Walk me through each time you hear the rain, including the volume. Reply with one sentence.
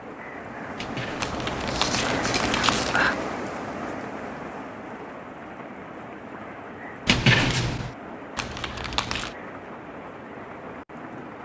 The rain can be heard from 0.0 to 11.4 s, getting quieter.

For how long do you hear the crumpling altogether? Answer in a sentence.
The crumpling can be heard for 3 seconds in total.